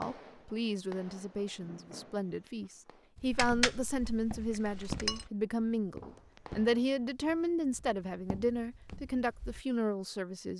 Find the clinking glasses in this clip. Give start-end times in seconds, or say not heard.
3.3-5.2.